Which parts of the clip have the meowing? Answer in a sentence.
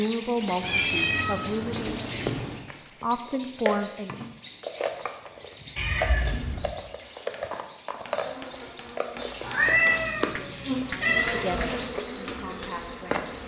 The meowing can be heard from 0.6 to 2.6 s, from 5.8 to 6.7 s and from 9.4 to 11.7 s.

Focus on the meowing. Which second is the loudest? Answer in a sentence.
The volume of the meowing peaks at 10 seconds.